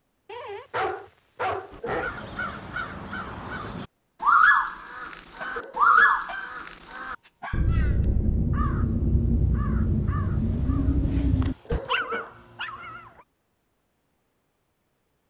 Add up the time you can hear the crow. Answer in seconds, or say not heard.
10 s.